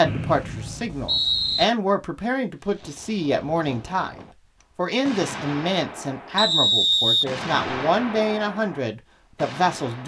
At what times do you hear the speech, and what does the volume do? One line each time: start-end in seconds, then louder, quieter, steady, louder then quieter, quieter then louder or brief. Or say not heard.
0.0-10.0 steady.